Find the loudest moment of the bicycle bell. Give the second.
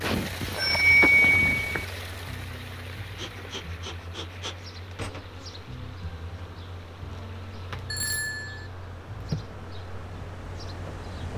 1 s.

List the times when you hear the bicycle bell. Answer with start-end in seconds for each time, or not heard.
0.0-1.9, 7.9-8.7.